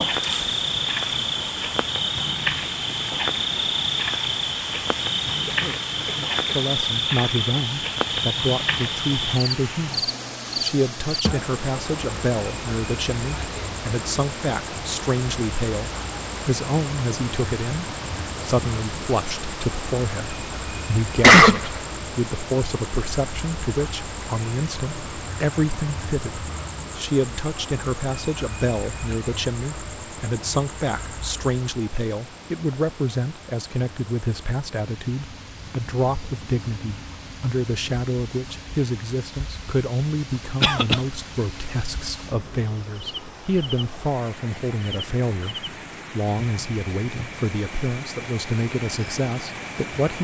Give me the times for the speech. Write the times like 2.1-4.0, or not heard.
6.5-50.1.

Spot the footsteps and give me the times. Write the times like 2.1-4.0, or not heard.
not heard.